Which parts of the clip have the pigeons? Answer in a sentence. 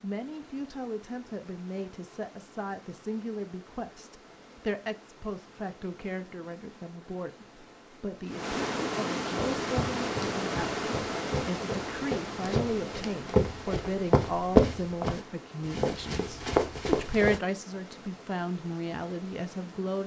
The pigeons can't be heard in this clip.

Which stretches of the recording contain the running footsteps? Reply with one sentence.
You can hear the running footsteps from 9.6 to 17.4 s.